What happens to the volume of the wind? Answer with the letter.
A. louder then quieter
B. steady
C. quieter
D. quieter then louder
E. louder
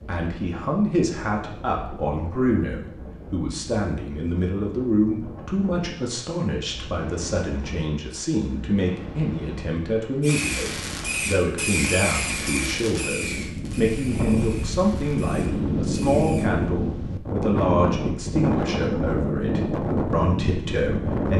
E.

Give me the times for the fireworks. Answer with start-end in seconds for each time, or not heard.
10.2-16.5.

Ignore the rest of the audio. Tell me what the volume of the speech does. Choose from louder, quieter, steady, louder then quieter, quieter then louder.
steady.